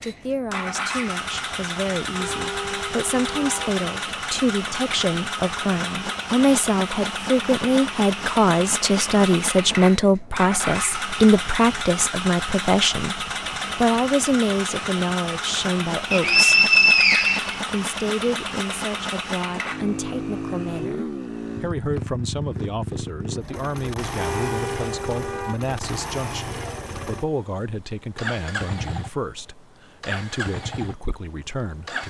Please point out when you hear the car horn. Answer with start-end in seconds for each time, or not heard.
2.1-3.7, 24.1-25.6.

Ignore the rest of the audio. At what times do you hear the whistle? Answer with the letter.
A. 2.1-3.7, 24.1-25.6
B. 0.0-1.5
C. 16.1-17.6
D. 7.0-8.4
C.